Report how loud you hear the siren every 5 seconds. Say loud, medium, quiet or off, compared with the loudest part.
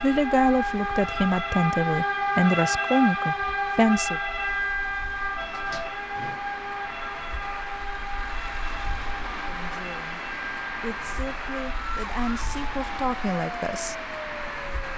loud, medium, medium.